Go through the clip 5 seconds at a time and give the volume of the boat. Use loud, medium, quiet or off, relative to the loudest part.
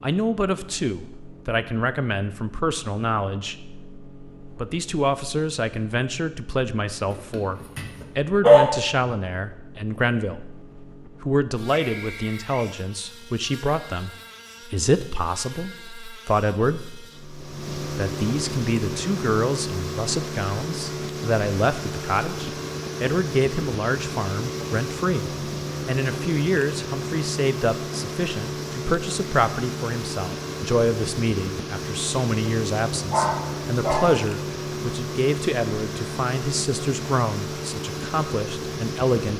quiet, quiet, quiet, loud, loud, loud, loud, loud.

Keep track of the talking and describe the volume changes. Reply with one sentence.
The loudness of the talking stays about the same.